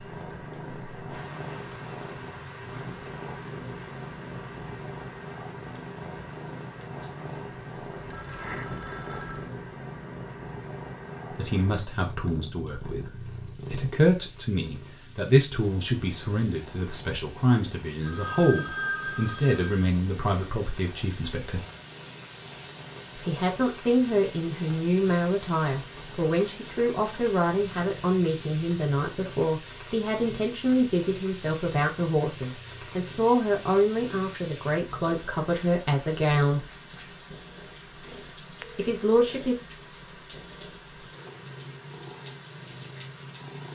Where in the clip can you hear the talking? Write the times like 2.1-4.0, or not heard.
11.3-21.6, 23.1-36.6, 38.8-39.5.